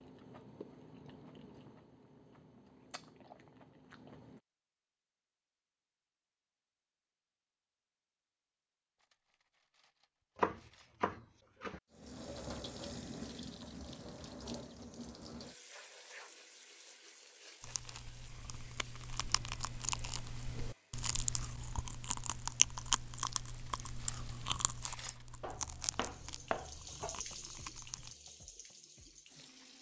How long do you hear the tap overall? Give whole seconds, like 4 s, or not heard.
13 s.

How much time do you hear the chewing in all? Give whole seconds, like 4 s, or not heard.
15 s.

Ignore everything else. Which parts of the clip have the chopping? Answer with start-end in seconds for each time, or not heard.
10.3-11.8, 25.4-27.1.